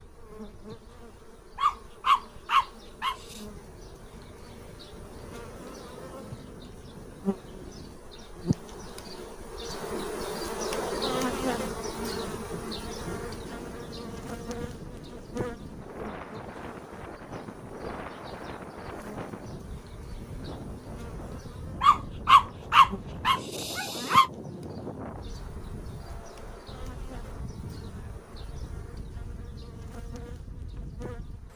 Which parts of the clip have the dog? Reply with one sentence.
You can hear the dog from 1.6 to 3.4 s and from 21.8 to 24.3 s.